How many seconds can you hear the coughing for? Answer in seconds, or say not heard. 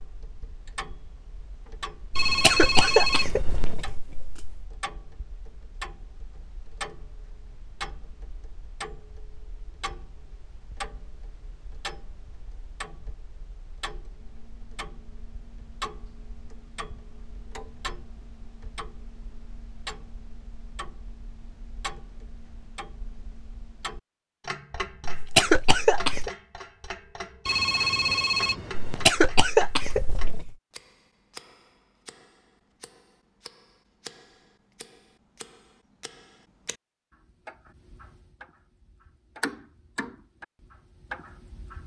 5 s.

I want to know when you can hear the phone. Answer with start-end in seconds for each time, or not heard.
2.1-3.8, 27.4-29.1.